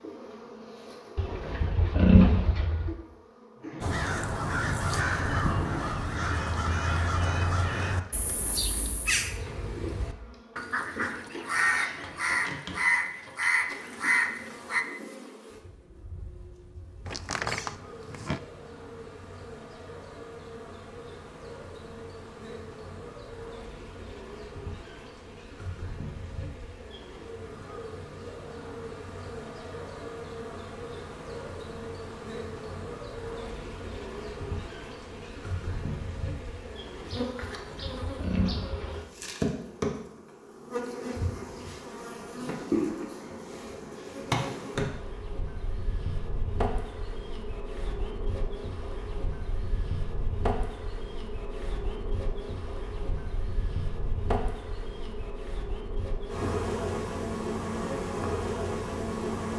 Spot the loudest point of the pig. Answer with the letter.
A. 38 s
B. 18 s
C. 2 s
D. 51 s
C.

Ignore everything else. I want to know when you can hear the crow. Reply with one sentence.
The crow can be heard from 3.8 to 14.8 s.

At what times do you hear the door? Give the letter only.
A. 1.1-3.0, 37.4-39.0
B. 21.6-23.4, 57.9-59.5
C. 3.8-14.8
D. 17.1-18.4
D.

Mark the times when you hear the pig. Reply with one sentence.
The pig can be heard from 1.1 to 3.0 s and from 37.4 to 39.0 s.